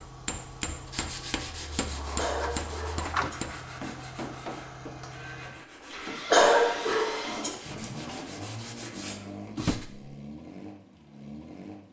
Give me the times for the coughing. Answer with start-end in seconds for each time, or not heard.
2.1-3.4, 6.3-7.5.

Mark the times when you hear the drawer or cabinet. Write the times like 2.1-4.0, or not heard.
1.9-3.4, 9.6-10.0.